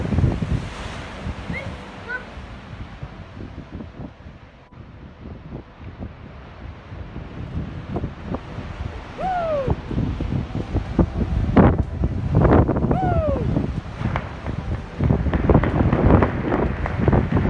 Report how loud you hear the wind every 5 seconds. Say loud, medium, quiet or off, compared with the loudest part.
medium, quiet, loud, loud.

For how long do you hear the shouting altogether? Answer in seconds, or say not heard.
2 s.